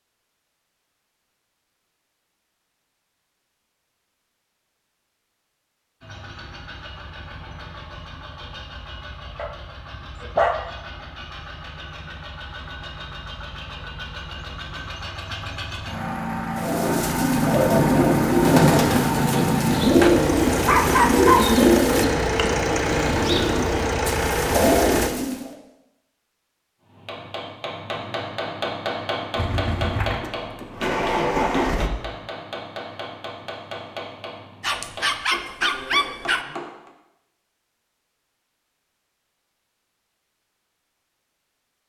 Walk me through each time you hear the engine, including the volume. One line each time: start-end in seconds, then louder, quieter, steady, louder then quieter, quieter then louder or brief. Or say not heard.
6.0-25.1 louder
29.4-31.9 brief.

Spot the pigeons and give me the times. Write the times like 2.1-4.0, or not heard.
16.6-25.6.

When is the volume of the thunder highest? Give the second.
19 s.